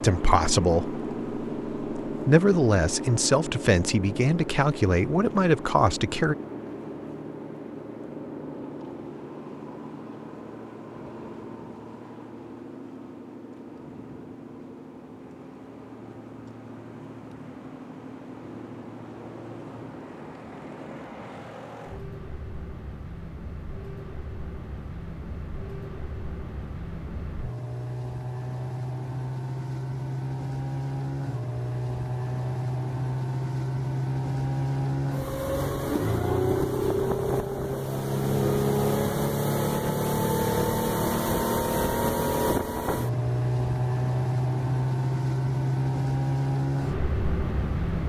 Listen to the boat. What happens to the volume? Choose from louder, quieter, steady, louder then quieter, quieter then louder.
quieter then louder.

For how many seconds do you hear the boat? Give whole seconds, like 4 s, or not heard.
48 s.